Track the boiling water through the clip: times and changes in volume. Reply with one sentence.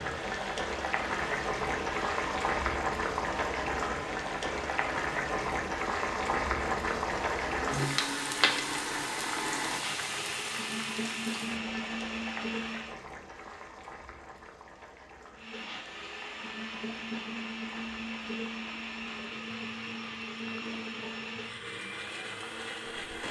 You can hear the boiling water from 0.0 to 23.2 s, getting quieter.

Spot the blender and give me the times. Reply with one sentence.
The blender can be heard from 0.0 to 13.0 s and from 15.3 to 23.2 s.